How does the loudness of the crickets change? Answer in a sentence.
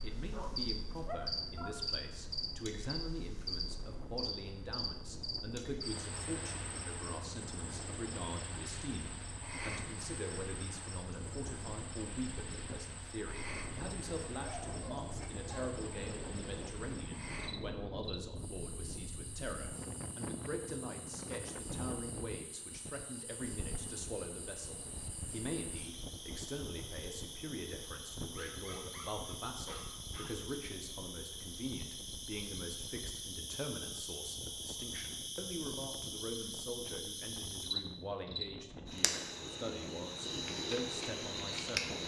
The loudness of the crickets goes down, then up.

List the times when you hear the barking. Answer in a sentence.
You can hear the barking from 0.3 to 1.8 s, from 14.3 to 15.8 s and from 28.4 to 30.4 s.